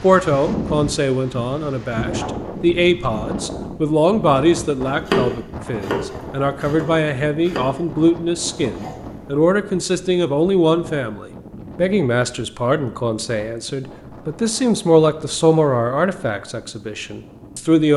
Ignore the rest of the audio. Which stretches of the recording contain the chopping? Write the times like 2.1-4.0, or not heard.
5.0-9.2.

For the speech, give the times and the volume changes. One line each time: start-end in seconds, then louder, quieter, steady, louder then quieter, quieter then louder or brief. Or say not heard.
0.0-17.9 steady.